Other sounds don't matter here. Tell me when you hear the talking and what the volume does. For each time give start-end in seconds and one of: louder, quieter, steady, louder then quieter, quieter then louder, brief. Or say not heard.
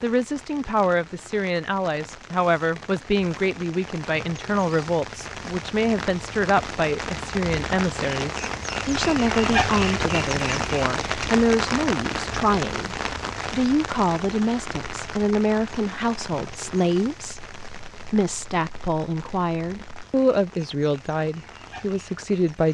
0.0-22.6 steady.